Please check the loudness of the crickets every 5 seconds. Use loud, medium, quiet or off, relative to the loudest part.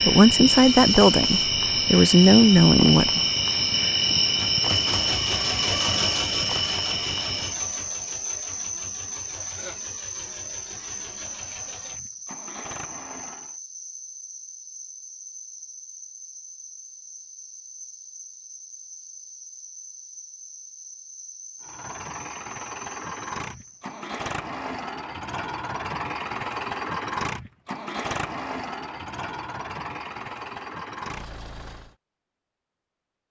loud, medium, quiet, quiet, quiet, off, off.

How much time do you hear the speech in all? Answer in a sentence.
You can hear the speech for 3 seconds altogether.